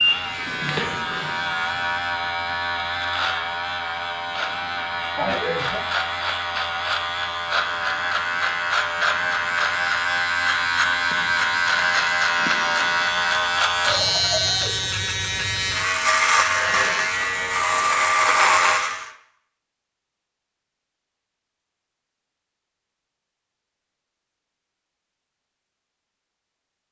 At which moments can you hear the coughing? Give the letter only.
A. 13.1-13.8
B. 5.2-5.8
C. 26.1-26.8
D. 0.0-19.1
B.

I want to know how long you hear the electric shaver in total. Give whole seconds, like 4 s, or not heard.
19 s.